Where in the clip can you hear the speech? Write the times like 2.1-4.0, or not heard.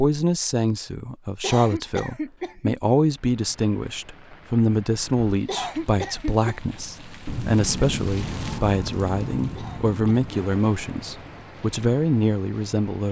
0.0-13.0.